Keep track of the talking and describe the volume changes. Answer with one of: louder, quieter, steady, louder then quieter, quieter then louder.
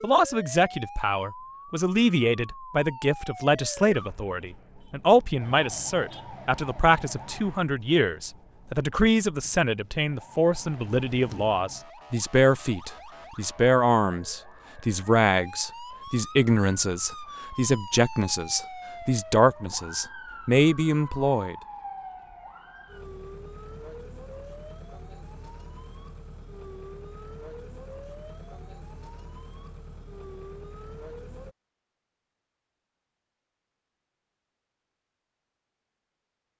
steady.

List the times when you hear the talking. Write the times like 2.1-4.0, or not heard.
0.0-21.6.